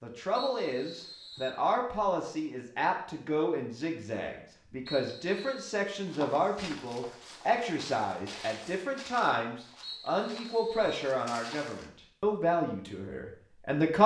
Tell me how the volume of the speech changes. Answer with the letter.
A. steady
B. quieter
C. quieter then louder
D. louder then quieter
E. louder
A.